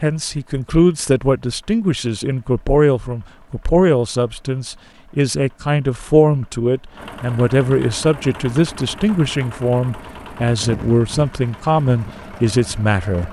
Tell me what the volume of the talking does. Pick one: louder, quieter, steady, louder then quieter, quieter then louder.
steady.